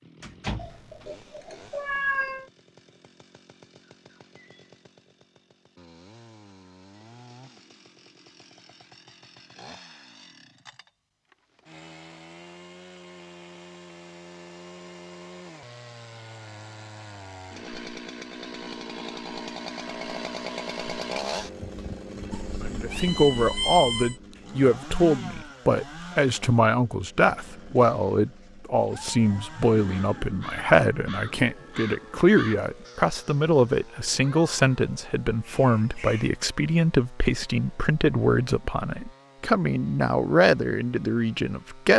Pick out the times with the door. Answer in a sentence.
You can hear the door from 0.2 to 1.1 s.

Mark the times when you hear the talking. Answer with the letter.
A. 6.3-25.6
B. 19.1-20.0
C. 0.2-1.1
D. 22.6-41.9
D.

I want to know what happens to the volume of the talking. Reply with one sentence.
The loudness of the talking stays about the same.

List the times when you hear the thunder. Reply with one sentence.
The thunder can't be heard in this clip.